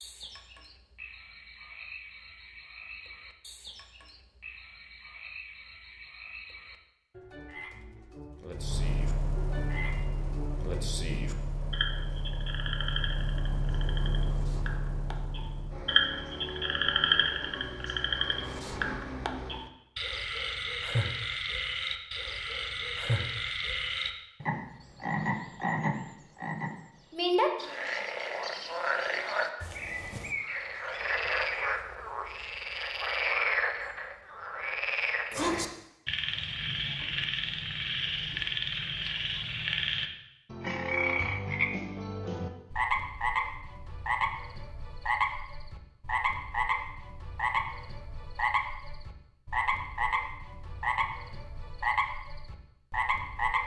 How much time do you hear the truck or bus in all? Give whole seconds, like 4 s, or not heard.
11 s.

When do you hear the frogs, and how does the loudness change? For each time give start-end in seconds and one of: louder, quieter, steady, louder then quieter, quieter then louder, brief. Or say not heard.
0.0-53.6 louder.